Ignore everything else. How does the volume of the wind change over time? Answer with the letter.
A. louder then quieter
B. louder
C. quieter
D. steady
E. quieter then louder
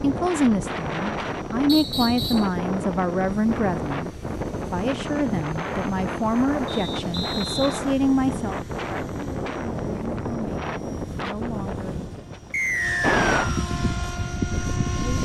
D.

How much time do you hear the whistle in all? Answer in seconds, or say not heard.
3 s.